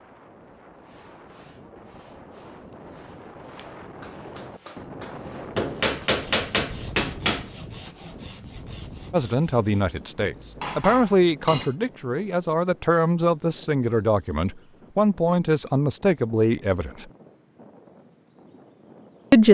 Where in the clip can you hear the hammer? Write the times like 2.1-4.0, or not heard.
5.5-7.5, 10.4-11.8.